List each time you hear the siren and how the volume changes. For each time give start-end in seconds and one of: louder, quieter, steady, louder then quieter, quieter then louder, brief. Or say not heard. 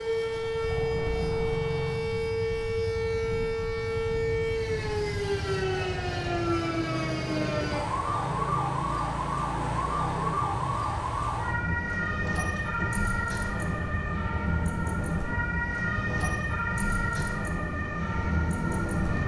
0.0-19.2 steady.